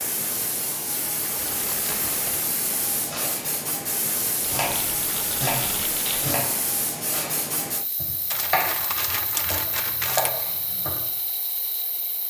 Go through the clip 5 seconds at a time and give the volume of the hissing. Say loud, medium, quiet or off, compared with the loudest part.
loud, loud, medium.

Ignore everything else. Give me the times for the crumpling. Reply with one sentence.
You can hear the crumpling from 1.4 to 2.5 s, from 4.5 to 6.3 s and from 8.3 to 10.3 s.